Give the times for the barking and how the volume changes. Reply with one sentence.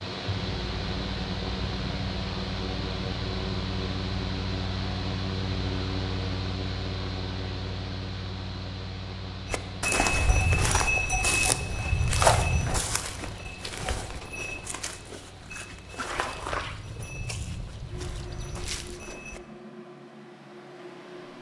The barking can't be heard in this clip.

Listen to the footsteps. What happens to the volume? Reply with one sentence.
The loudness of the footsteps goes down.